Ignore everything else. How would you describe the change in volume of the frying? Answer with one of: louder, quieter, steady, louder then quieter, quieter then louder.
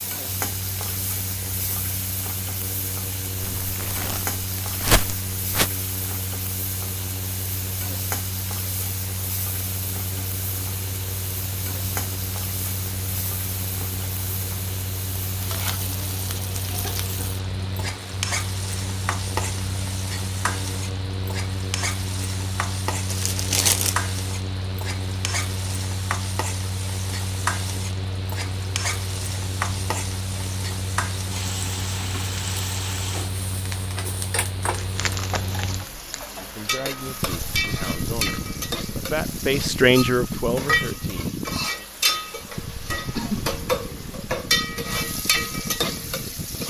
louder.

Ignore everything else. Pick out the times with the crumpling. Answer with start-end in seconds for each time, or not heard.
3.4-5.7, 23.1-24.1, 34.7-36.3.